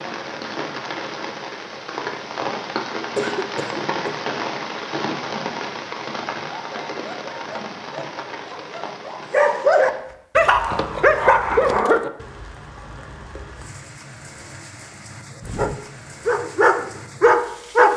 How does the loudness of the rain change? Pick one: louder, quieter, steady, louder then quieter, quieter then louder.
quieter.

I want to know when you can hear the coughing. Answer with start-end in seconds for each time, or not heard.
3.1-4.2.